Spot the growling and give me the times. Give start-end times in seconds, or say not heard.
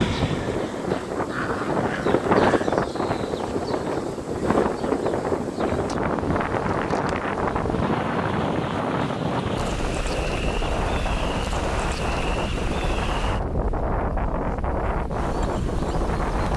0.8-2.8.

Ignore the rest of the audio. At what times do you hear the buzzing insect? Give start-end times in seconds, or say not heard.
0.0-16.5.